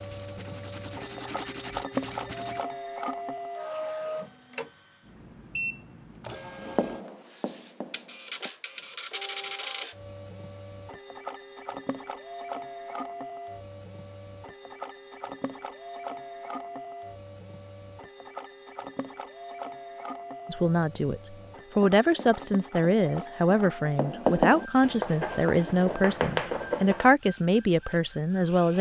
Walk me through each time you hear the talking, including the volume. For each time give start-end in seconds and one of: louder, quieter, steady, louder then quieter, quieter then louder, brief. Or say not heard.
20.4-28.7 steady.